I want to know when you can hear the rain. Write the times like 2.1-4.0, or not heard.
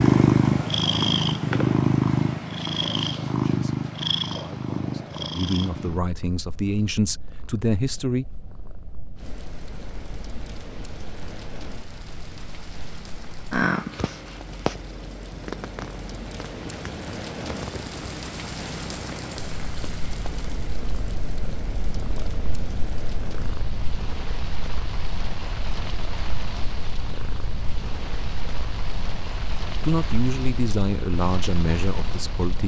9.2-32.6.